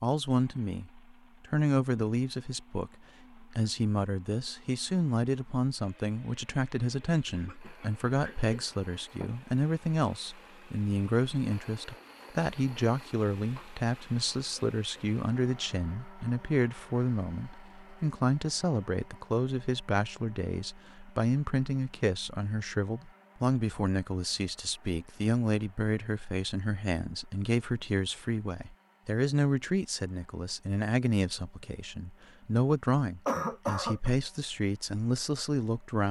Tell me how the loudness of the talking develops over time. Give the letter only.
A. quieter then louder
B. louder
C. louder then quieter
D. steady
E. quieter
D.